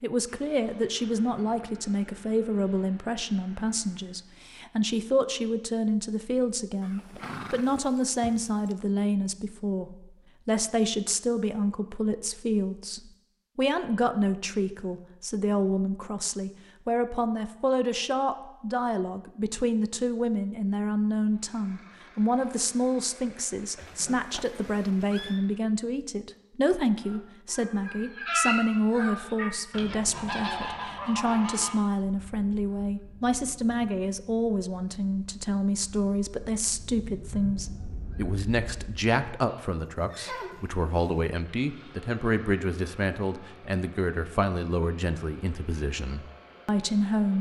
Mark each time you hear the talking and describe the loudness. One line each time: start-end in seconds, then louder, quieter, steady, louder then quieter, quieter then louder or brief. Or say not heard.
0.0-47.3 steady.